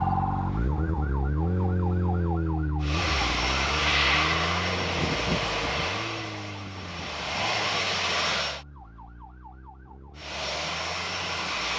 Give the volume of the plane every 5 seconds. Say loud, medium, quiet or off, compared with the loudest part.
loud, loud, medium.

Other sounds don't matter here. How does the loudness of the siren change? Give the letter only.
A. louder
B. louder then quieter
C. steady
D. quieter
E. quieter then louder
D.